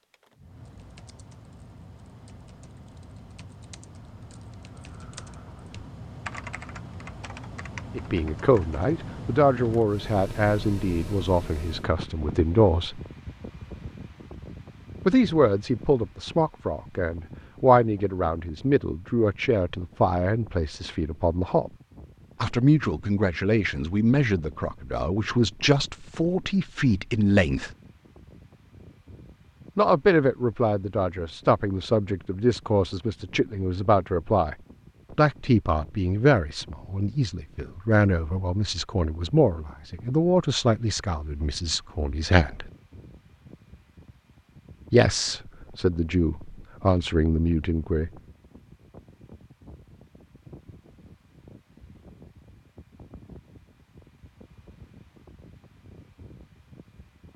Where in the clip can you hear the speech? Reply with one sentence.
The speech can be heard from 8.0 to 13.0 s, from 15.1 to 21.7 s, from 22.4 to 27.7 s, from 29.8 to 34.5 s, from 35.1 to 42.7 s and from 44.9 to 48.1 s.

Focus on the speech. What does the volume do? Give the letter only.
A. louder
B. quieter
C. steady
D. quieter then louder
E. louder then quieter
C.